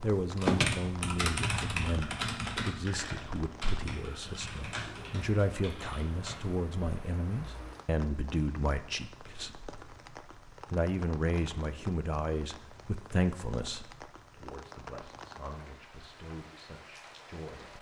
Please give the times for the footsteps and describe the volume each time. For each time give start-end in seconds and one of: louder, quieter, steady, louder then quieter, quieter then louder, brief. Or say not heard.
not heard.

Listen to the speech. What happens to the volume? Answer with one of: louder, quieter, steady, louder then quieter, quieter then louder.
quieter.